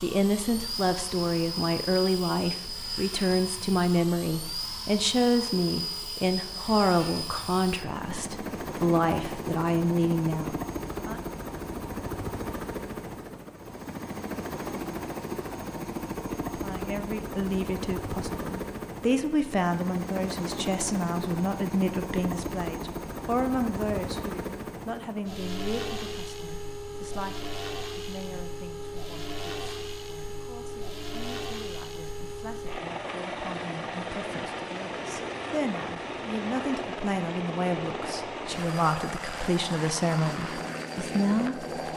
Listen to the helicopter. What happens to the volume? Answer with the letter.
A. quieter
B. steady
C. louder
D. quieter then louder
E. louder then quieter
B.